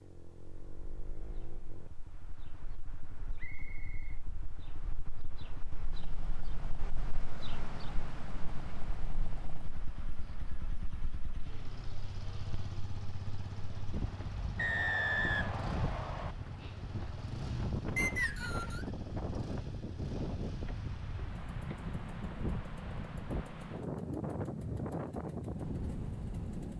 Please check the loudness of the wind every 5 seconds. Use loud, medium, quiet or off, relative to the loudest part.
quiet, medium, medium, loud, loud, loud.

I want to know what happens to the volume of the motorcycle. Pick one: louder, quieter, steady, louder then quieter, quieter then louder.
louder.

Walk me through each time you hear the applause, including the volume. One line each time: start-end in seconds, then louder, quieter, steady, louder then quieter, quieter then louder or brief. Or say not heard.
not heard.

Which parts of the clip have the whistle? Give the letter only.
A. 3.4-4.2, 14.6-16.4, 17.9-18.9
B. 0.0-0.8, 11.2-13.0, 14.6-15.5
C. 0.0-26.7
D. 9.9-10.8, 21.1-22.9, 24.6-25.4
A.